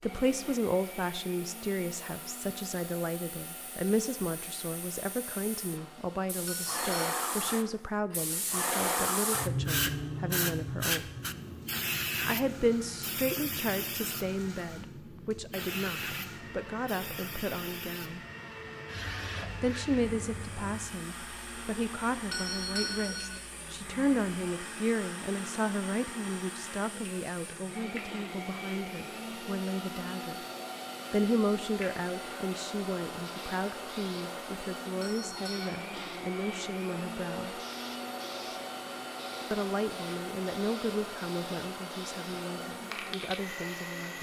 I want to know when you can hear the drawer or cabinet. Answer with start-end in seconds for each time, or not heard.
not heard.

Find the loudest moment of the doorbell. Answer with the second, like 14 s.
23 s.